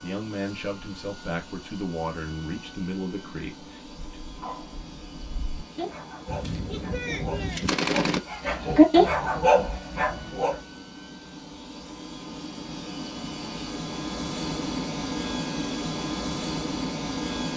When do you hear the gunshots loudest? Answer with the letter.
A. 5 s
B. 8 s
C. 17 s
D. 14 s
B.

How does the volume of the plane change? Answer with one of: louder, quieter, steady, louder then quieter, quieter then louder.
louder.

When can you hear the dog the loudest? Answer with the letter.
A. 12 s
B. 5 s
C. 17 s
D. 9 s
D.